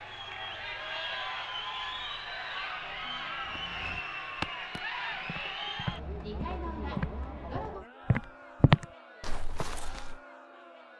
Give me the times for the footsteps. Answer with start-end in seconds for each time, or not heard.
3.4-10.2.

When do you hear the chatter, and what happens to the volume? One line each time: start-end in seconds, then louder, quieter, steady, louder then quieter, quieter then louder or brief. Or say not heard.
0.0-10.9 quieter.